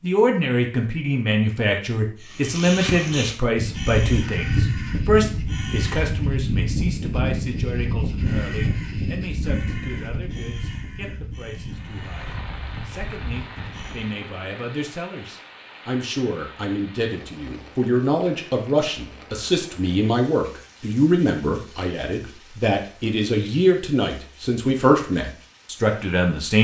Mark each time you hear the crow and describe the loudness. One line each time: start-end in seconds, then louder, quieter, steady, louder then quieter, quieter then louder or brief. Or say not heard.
2.2-14.1 quieter.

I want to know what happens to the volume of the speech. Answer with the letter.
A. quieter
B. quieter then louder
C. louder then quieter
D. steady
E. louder
B.